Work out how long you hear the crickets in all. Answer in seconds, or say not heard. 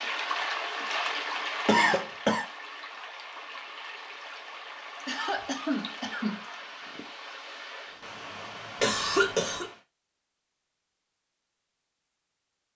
not heard.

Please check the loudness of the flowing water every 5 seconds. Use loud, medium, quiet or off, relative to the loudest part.
loud, medium, off.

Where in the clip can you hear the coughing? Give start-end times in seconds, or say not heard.
1.6-2.5, 5.0-6.5, 8.8-9.7.